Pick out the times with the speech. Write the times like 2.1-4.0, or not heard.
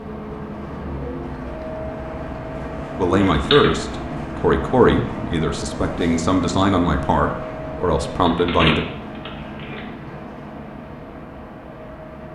3.0-8.8.